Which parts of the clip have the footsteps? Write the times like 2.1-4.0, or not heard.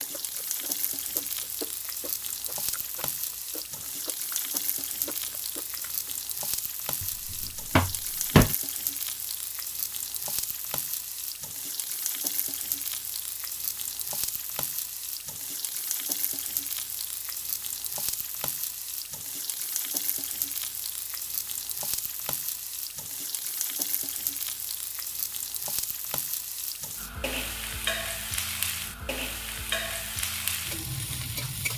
not heard.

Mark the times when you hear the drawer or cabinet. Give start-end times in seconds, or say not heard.
7.0-8.6.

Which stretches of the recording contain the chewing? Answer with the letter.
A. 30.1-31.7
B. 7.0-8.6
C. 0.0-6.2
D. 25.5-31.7
C.